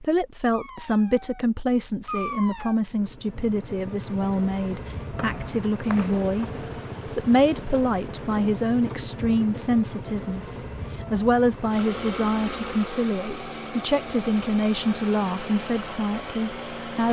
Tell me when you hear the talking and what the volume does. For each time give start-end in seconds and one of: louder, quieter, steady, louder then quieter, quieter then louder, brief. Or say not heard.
0.0-17.0 steady.